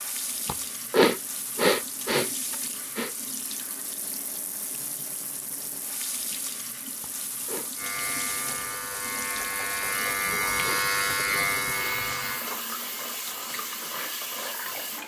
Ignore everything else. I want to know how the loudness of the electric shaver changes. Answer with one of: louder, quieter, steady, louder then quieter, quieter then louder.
louder.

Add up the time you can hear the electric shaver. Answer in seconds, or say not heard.
5 s.